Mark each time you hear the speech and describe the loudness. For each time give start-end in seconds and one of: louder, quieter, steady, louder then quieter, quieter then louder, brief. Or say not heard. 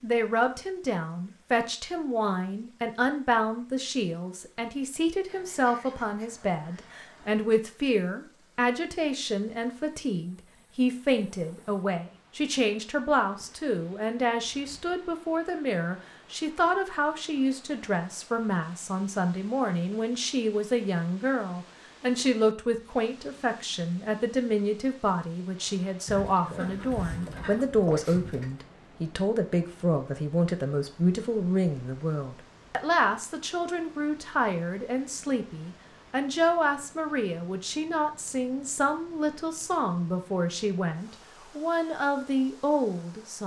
0.0-43.4 steady.